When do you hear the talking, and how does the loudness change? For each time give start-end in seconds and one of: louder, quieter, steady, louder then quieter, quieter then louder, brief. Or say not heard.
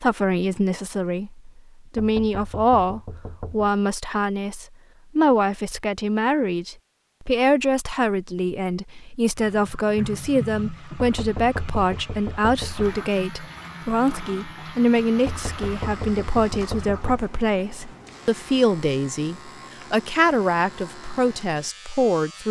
0.0-22.4 steady.